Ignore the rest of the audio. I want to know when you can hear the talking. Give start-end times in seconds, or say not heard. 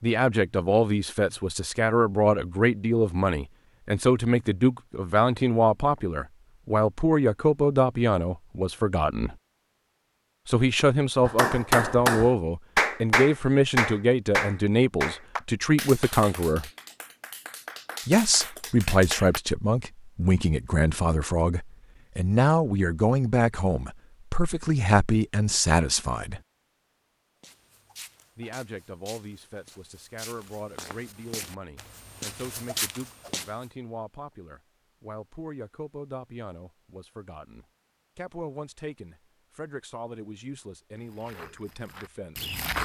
0.0-9.3, 10.4-16.7, 18.1-26.4, 28.4-42.5.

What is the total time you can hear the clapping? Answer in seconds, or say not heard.
8 s.